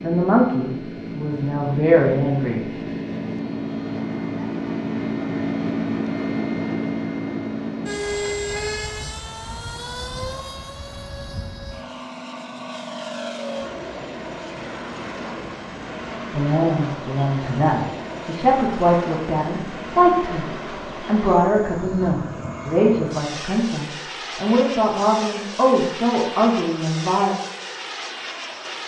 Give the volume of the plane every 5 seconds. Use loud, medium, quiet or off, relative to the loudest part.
loud, loud, medium, medium, medium, medium.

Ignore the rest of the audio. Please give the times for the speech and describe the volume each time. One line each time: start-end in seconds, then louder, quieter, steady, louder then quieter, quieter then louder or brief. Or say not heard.
0.0-2.6 brief
16.3-27.4 steady.